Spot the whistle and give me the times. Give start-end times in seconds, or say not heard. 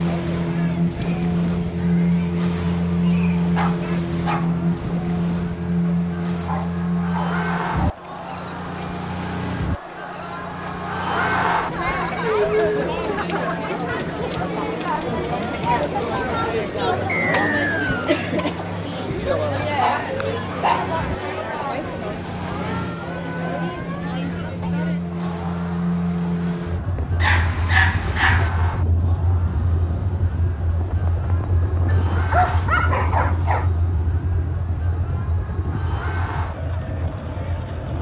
17.1-18.1.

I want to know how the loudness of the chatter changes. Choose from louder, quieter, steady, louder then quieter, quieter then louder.
louder then quieter.